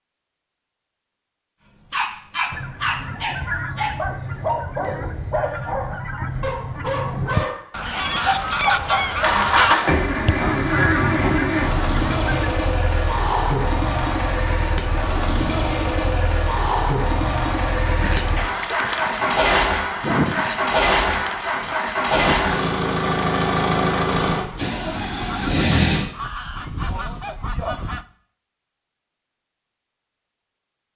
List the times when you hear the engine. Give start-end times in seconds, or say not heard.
9.2-26.1.